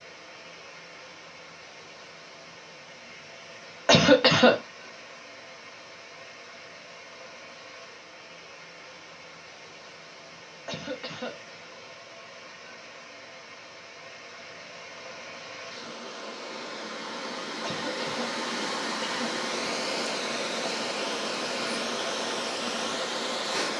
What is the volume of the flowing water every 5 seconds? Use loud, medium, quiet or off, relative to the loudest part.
quiet, quiet, quiet, loud, loud.